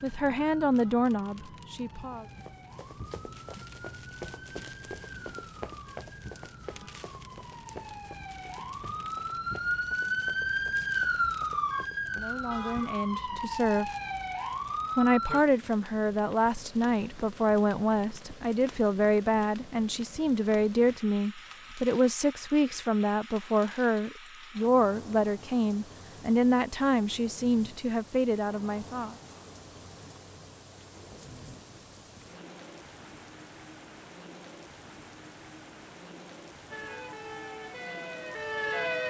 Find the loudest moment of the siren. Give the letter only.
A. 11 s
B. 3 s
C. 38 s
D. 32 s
A.